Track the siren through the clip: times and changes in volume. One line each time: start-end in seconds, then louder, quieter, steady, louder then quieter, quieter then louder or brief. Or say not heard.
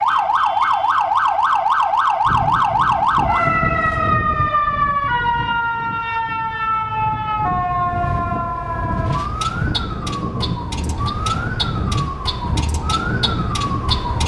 0.0-14.2 quieter.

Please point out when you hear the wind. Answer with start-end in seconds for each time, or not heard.
2.2-14.2.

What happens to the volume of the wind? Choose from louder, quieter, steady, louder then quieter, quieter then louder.
quieter then louder.